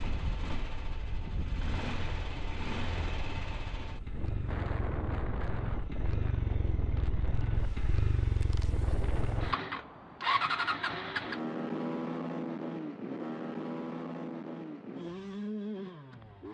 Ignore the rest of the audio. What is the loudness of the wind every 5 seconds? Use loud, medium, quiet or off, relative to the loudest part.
loud, loud, off, off.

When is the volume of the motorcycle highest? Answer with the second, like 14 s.
11 s.